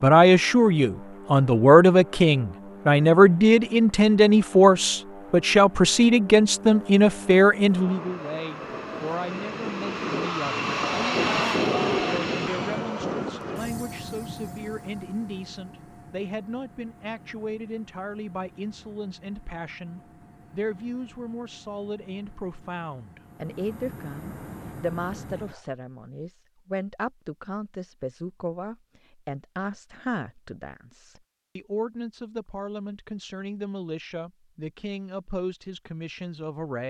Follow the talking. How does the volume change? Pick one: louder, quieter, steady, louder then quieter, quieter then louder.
quieter.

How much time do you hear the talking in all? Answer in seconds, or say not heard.
37 s.